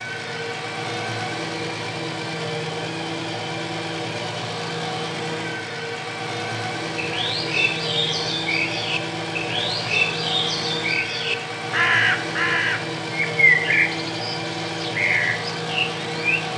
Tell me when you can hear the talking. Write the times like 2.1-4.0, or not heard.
not heard.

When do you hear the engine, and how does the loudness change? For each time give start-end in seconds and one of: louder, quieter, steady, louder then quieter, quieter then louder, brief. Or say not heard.
0.0-16.5 steady.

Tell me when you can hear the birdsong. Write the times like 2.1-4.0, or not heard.
7.0-16.4.